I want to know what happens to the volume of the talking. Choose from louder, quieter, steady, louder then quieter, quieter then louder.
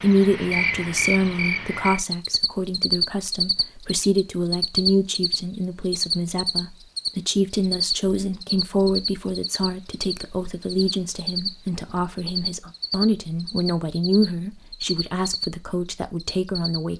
steady.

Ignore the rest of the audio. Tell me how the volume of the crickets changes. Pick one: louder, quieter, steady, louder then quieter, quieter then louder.
quieter.